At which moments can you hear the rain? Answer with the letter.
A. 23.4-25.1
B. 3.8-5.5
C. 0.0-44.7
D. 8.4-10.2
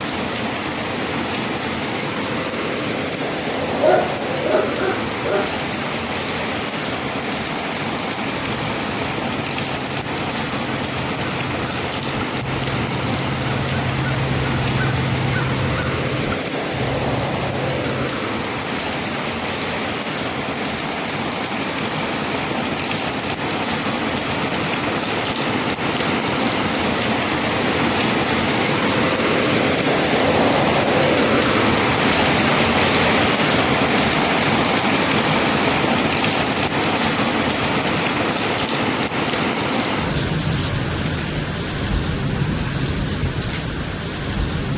C.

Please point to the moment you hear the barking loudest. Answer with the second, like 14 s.
4 s.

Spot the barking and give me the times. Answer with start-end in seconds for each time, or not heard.
3.8-5.5.